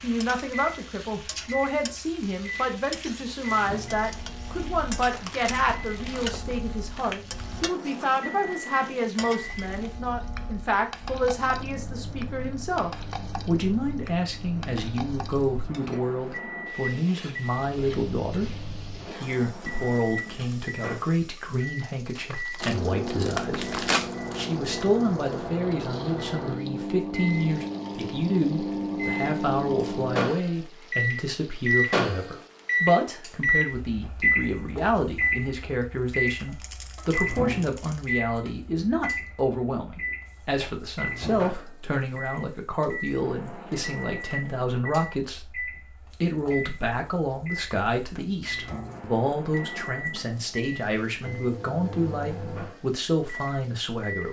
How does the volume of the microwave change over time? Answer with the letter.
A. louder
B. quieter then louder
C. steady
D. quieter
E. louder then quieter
E.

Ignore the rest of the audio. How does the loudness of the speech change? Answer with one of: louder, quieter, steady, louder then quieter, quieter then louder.
steady.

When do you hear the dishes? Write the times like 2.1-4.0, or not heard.
not heard.